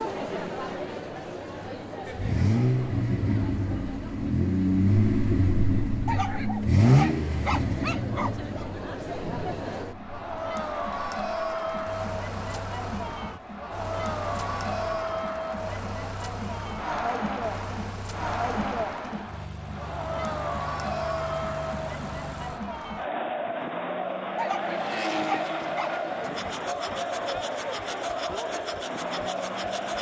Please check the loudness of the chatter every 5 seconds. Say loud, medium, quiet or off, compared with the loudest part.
medium, medium, loud, loud, loud, loud.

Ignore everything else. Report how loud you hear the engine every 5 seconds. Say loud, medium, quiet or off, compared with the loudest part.
loud, loud, quiet, quiet, quiet, medium.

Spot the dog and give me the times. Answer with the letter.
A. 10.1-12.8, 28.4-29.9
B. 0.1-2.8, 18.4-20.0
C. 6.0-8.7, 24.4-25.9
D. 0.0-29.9
C.